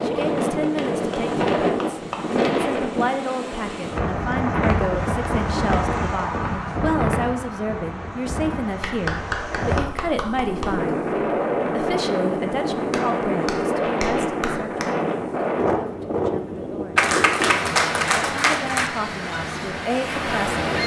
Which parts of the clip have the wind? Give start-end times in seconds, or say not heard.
0.0-20.8.